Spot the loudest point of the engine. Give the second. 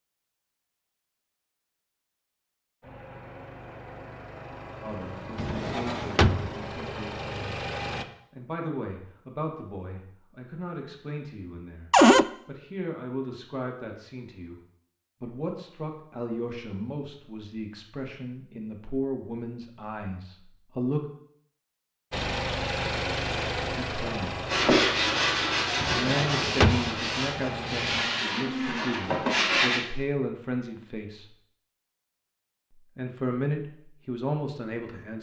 23 s.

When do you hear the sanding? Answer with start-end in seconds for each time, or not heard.
24.4-29.8.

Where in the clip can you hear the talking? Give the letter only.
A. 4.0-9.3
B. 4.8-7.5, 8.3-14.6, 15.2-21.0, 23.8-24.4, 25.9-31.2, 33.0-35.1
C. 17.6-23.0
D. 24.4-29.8
B.